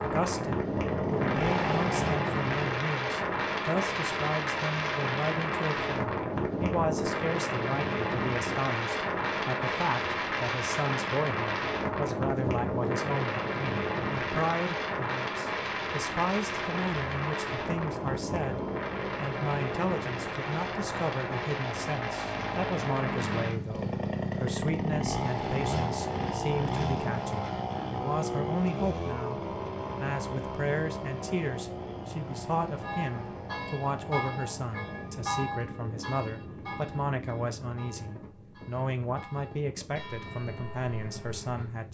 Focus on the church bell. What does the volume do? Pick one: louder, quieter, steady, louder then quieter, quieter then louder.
quieter then louder.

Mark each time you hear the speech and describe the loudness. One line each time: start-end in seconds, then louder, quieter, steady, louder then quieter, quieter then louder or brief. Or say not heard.
0.0-41.8 steady.